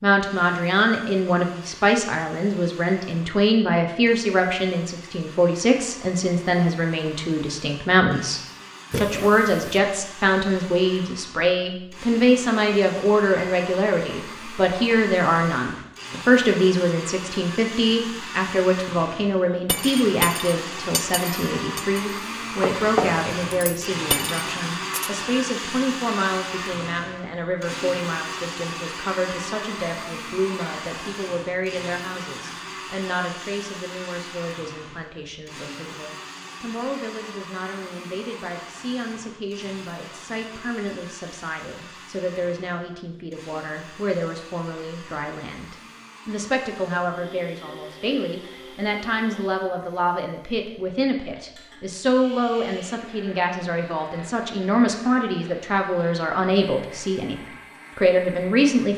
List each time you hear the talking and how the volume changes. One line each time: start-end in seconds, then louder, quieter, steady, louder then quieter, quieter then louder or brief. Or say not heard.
0.0-58.9 quieter then louder.